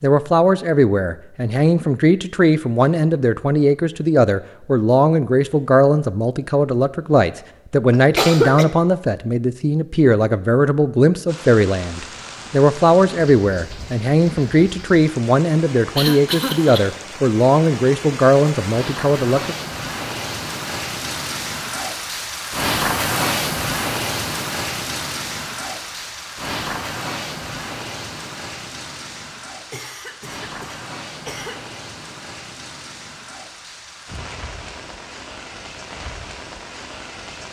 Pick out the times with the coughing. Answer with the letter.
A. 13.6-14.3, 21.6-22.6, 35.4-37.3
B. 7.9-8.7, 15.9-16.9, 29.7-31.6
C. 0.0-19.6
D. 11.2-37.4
B.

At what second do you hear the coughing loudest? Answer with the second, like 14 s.
8 s.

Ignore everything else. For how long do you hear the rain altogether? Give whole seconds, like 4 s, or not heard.
26 s.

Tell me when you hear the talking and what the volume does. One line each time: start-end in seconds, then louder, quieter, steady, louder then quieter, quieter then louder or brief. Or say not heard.
0.0-19.6 steady.